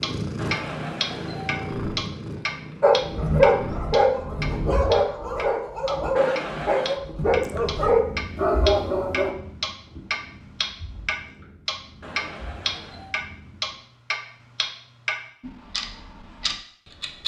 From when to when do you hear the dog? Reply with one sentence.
The dog can be heard from 2.8 to 9.3 s.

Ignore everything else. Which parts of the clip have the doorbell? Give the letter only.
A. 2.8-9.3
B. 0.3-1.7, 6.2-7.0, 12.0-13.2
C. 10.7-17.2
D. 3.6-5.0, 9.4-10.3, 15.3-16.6
B.